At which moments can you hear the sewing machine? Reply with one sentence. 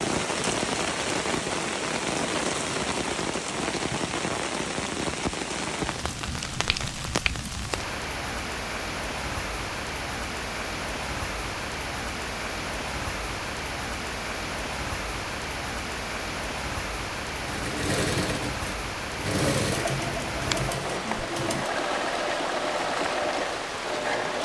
You can hear the sewing machine from 17.4 to 24.4 s.